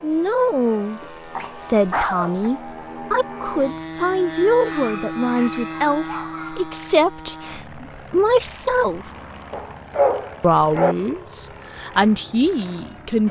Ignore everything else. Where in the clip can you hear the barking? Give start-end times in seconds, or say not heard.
1.0-2.5, 4.7-6.7, 9.5-10.9.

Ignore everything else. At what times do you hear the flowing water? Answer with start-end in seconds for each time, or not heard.
not heard.